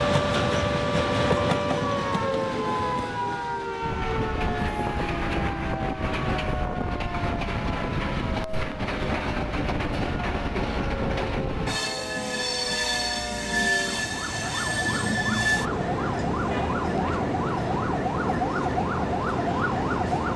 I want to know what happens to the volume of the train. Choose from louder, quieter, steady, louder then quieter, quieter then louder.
steady.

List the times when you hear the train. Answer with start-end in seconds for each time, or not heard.
0.0-20.3.